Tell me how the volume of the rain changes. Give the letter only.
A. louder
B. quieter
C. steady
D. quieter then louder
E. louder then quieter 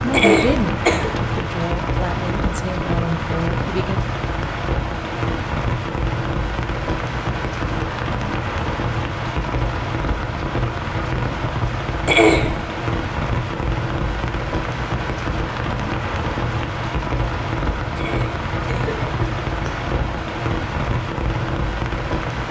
C.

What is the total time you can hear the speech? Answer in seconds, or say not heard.
4 s.